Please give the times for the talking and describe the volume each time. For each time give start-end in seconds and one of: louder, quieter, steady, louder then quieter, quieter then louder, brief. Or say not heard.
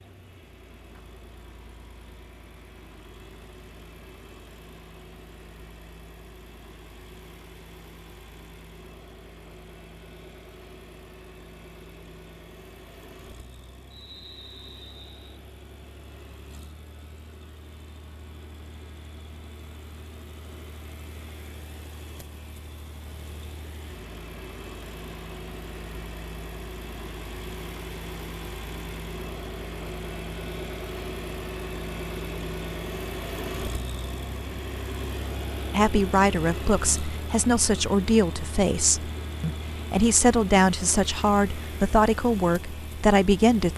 35.7-43.7 steady.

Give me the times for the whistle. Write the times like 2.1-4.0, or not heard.
13.9-15.4.